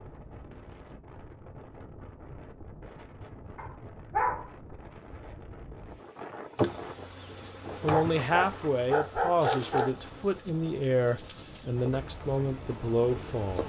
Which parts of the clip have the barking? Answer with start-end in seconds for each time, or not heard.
3.5-4.5, 7.7-9.9.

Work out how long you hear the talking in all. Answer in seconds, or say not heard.
6 s.